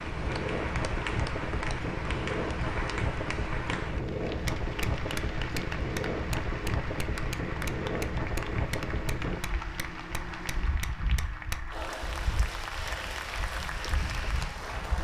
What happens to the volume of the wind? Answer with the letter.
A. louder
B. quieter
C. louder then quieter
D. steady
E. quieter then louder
B.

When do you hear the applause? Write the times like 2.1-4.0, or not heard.
0.0-14.9.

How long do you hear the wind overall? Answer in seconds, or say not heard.
15 s.